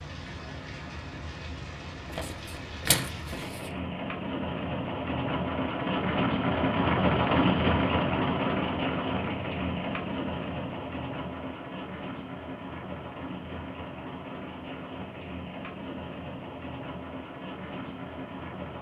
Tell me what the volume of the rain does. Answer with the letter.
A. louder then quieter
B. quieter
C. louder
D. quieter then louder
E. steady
A.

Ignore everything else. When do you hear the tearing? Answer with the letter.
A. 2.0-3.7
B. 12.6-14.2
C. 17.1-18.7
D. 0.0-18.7
A.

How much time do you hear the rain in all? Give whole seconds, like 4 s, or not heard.
19 s.